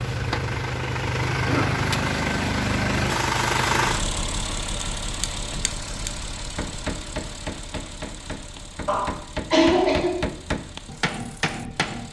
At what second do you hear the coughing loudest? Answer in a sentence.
The loudest moment of the coughing is at 10 seconds.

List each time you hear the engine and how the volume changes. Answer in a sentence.
You can hear the engine from 0.0 to 12.0 s, getting quieter.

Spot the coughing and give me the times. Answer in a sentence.
You can hear the coughing from 1.3 to 1.9 s and from 8.8 to 10.2 s.